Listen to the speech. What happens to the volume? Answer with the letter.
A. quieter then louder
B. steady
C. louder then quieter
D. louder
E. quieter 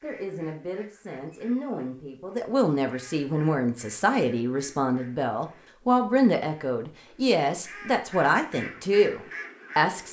D.